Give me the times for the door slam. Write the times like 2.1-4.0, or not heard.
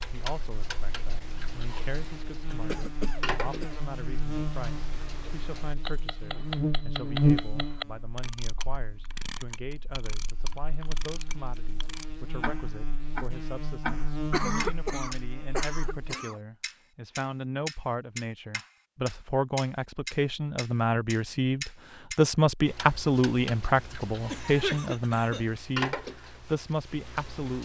not heard.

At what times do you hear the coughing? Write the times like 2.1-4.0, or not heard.
2.6-3.8, 13.9-16.4, 24.2-25.5.